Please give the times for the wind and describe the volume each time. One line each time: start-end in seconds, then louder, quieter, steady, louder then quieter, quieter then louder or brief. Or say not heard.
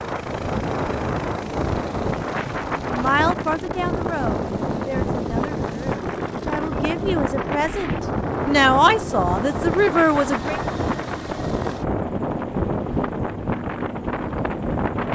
0.0-15.0 steady.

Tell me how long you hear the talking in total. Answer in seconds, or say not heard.
8 s.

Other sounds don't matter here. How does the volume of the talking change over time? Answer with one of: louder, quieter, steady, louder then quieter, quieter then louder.
quieter then louder.